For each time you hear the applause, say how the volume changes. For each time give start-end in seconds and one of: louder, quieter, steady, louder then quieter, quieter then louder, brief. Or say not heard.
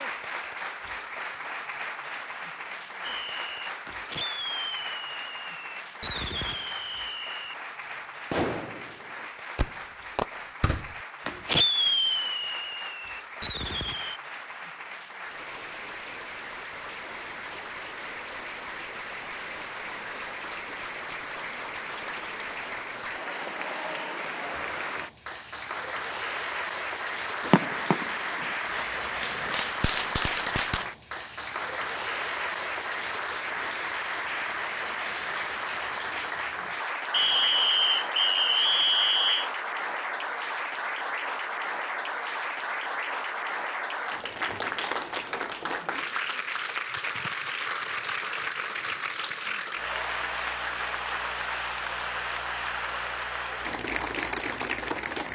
0.0-55.3 louder.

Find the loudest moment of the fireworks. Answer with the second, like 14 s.
12 s.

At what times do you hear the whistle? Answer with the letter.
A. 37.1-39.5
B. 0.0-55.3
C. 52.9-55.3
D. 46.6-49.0
A.